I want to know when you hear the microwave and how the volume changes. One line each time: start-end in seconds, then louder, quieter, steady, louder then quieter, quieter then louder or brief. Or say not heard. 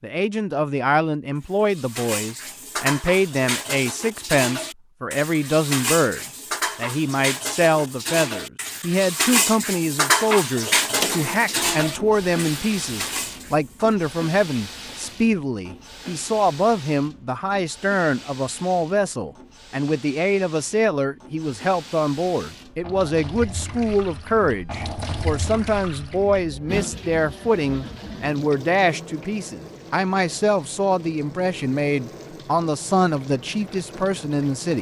not heard.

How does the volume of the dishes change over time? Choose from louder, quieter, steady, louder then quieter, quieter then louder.
louder then quieter.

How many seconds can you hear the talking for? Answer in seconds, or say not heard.
35 s.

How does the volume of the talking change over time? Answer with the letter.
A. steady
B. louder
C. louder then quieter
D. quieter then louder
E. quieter
A.